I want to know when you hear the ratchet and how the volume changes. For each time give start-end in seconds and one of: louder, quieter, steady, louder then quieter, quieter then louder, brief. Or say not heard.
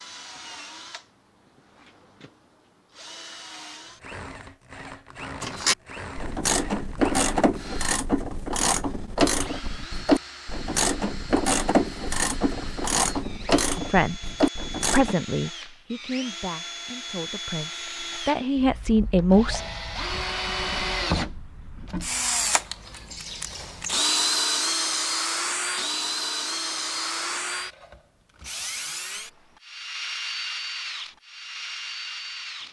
5.4-15.2 steady.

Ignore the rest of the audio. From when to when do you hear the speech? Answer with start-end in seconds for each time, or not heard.
13.8-14.2, 14.8-19.6.